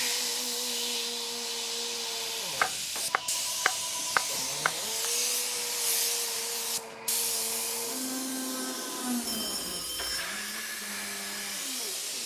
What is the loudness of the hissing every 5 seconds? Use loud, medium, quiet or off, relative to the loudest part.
loud, loud, medium.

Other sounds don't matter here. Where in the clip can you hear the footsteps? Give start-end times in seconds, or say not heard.
not heard.